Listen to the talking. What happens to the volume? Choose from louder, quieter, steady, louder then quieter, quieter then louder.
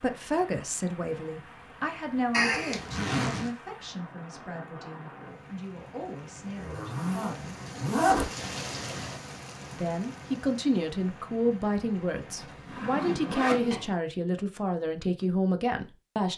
quieter then louder.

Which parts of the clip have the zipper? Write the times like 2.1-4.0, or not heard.
2.3-3.5, 6.5-8.9, 12.3-13.9.